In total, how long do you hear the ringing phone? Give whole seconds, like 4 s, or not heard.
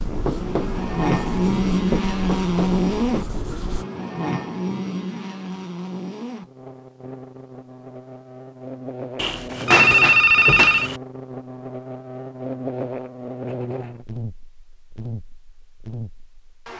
2 s.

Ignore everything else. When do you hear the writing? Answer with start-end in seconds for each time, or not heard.
0.0-3.9.